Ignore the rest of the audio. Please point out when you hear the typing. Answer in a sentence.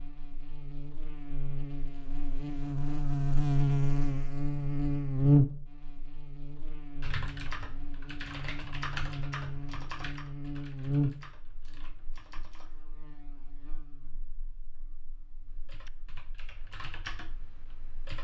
The typing can be heard from 7.0 to 12.8 s and from 15.4 to 18.1 s.